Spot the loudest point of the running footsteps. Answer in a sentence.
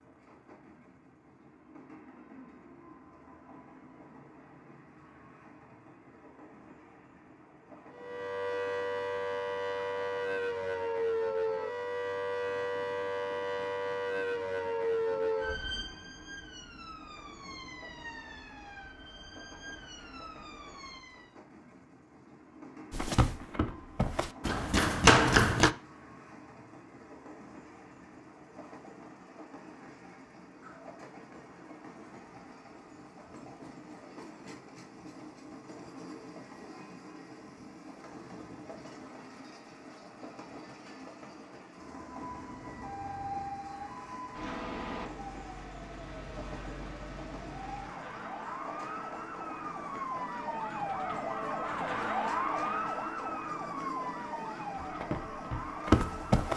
The volume of the running footsteps peaks at 25 seconds.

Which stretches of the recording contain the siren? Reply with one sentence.
The siren can be heard from 7.9 to 21.4 s and from 42.2 to 56.5 s.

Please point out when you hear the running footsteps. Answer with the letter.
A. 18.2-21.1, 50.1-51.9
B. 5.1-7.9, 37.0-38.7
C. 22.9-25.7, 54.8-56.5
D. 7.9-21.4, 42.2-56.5
C.